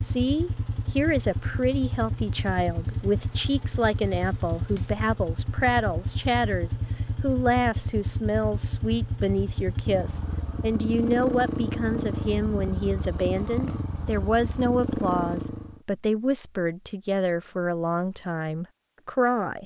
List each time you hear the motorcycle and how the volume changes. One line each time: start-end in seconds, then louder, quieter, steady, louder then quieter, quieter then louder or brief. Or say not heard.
0.0-15.8 steady.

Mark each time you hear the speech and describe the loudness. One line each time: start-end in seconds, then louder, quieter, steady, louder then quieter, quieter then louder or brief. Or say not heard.
0.0-19.6 steady.